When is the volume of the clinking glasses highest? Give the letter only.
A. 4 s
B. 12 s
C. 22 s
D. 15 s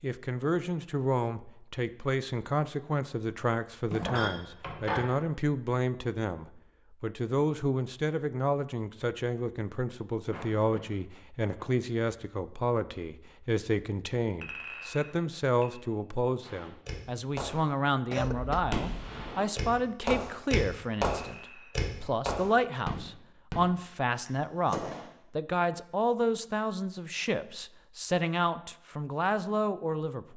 A.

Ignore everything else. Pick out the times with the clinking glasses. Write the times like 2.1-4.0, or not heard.
3.9-5.0, 14.4-15.7, 21.1-21.8.